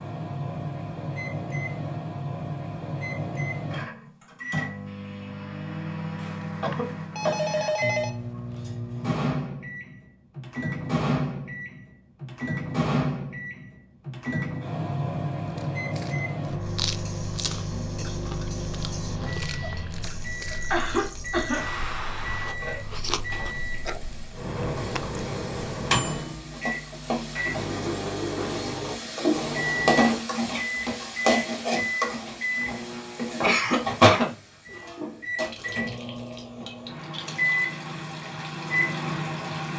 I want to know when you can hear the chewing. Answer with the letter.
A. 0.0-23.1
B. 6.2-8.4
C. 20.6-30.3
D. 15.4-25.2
D.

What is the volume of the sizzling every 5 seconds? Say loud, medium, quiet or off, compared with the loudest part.
off, off, off, quiet, quiet, loud, loud, medium.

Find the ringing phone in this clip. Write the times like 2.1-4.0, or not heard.
6.2-8.4.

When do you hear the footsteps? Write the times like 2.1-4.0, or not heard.
not heard.